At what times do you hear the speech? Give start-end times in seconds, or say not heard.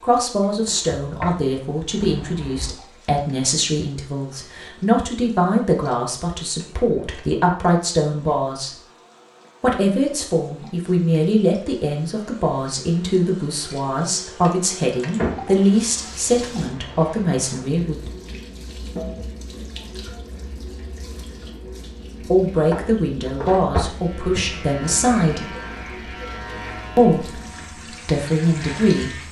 0.0-8.7, 9.6-17.9, 22.3-25.5, 26.9-29.2.